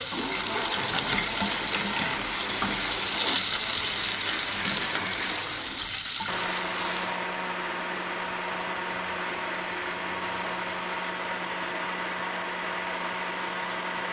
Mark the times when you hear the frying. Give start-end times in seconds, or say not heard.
0.0-7.2.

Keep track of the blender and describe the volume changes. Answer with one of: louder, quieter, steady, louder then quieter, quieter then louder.
steady.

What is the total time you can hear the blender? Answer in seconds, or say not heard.
14 s.